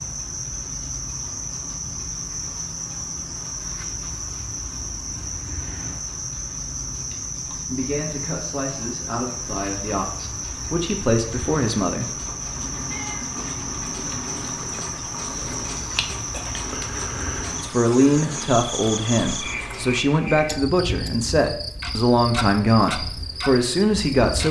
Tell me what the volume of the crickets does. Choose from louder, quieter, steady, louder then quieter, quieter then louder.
steady.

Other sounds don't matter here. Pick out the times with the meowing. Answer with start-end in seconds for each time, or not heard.
12.5-14.4.